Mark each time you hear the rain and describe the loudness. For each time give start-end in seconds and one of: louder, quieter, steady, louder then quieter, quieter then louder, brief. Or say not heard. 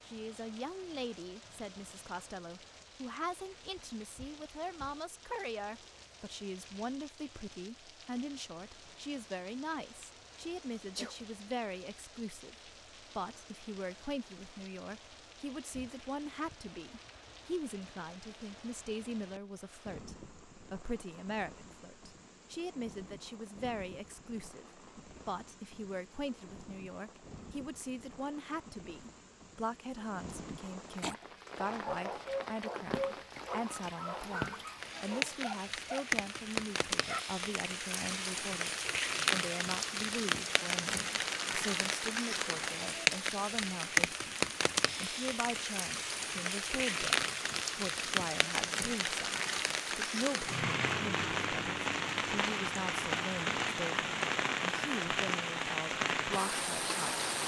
0.0-57.4 louder.